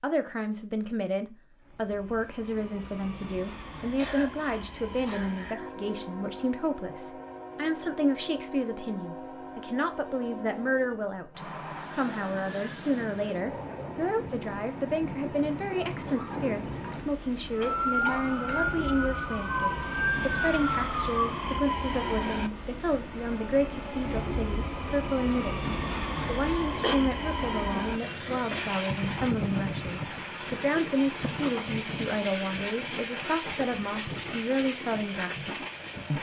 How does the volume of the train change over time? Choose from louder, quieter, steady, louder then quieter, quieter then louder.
louder.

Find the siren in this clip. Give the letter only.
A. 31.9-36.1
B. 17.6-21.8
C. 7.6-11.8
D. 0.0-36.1
B.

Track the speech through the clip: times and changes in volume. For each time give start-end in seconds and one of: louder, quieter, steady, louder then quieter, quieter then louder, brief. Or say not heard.
0.0-36.1 steady.